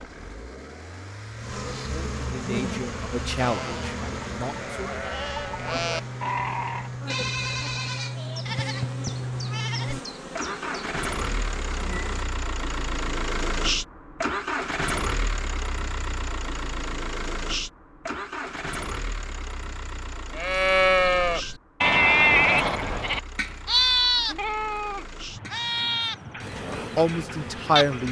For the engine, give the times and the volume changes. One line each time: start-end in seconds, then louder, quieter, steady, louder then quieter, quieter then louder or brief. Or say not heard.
0.0-28.0 louder then quieter.